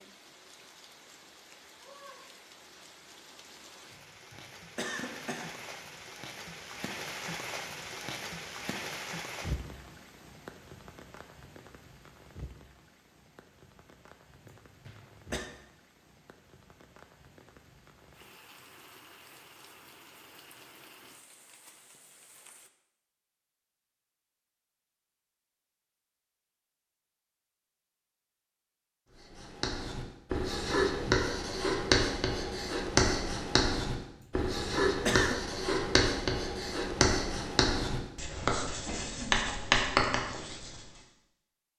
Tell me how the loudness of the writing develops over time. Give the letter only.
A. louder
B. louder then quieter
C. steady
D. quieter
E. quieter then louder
C.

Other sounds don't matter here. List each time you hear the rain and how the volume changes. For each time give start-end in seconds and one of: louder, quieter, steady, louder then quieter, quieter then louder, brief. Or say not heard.
0.0-22.7 louder then quieter.